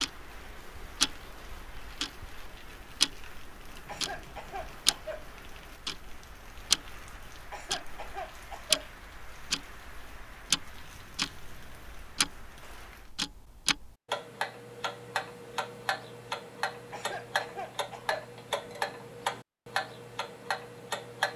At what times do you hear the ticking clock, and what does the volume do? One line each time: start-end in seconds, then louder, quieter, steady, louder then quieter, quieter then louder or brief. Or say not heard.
0.0-21.3 steady.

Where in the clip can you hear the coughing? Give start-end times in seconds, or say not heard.
3.9-5.3, 7.5-8.9, 16.9-18.4.